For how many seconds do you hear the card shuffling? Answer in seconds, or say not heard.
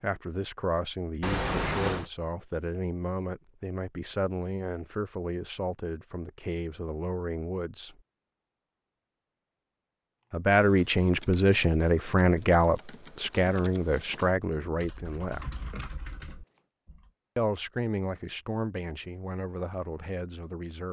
2 s.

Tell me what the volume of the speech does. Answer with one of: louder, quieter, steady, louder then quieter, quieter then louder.
louder then quieter.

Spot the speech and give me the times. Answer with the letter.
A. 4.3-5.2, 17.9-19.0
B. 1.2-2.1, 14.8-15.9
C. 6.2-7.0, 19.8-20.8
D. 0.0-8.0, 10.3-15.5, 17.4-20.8
D.